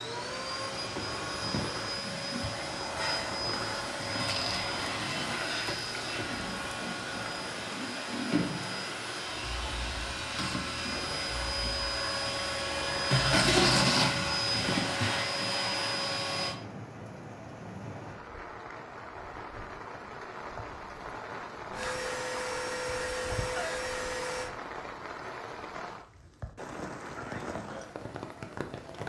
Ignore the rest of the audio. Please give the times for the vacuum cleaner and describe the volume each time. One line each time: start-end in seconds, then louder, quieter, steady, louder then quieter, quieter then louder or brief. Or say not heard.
0.0-16.6 louder
21.7-24.5 brief.